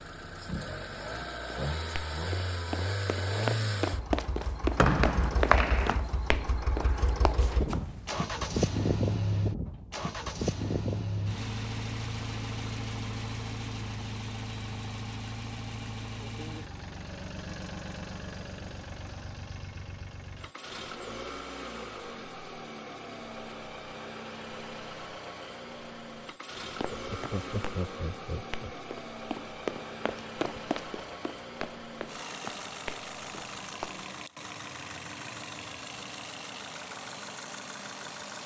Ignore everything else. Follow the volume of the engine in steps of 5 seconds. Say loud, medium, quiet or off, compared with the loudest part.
loud, loud, loud, medium, medium, medium, medium, medium.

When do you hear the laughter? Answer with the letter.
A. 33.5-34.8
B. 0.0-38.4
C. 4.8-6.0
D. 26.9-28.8
D.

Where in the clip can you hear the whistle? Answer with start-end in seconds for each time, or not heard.
4.8-6.0.